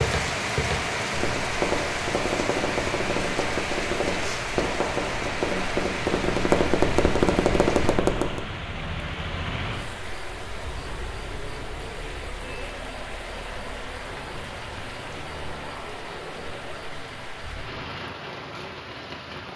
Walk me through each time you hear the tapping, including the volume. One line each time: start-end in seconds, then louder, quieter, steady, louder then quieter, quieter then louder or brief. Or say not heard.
0.0-8.4 louder.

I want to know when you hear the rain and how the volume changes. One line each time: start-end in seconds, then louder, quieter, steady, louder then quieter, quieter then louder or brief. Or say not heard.
0.0-19.5 quieter.